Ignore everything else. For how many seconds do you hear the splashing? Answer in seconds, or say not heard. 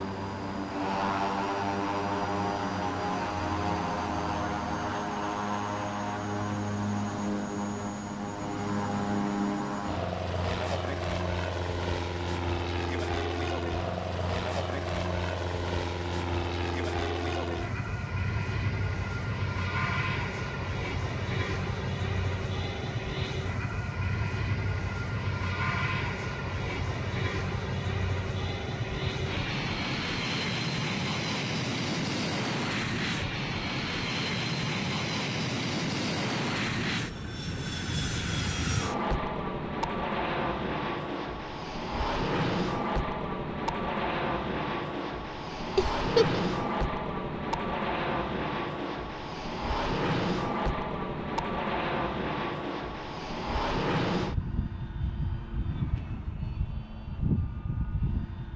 not heard.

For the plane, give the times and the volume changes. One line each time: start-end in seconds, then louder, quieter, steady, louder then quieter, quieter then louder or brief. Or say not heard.
0.0-58.5 steady.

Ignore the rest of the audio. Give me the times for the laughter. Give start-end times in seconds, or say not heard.
45.8-46.5.